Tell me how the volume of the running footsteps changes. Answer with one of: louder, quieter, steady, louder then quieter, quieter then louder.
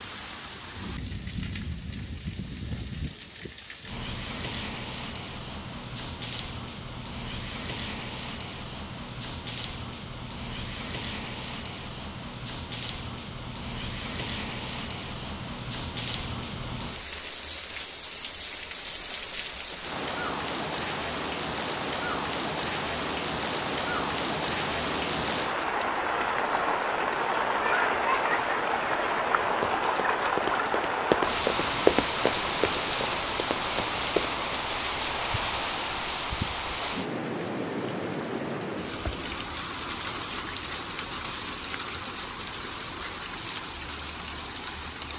louder then quieter.